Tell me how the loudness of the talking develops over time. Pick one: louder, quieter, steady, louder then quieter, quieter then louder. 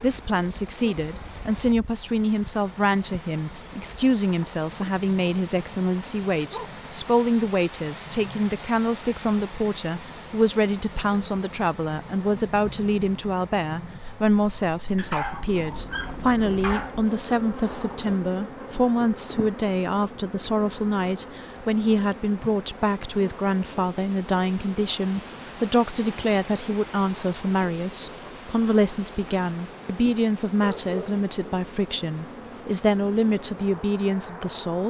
steady.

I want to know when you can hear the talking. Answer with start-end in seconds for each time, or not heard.
0.0-34.8.